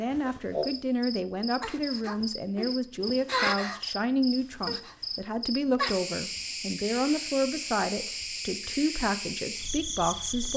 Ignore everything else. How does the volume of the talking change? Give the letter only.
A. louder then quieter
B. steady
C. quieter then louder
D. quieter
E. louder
B.